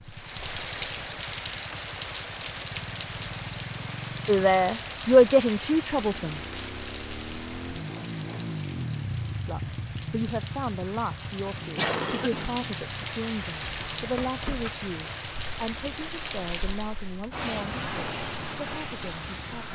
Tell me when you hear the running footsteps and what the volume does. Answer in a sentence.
The running footsteps can't be heard in this clip.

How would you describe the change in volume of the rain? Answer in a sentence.
The loudness of the rain goes down, then up.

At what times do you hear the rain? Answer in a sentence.
You can hear the rain from 0.0 to 19.7 s.